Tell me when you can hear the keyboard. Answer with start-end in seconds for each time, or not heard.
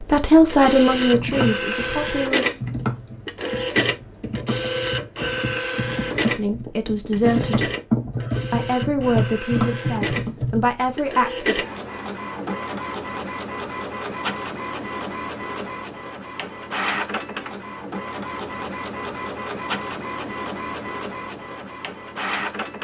0.9-10.9.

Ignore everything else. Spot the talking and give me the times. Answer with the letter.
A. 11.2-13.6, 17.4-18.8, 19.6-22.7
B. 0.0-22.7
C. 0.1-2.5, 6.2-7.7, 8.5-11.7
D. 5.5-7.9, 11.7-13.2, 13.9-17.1
C.